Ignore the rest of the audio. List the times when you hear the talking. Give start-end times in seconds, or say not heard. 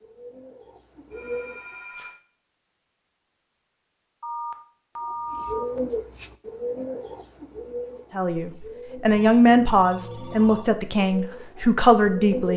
8.2-12.5.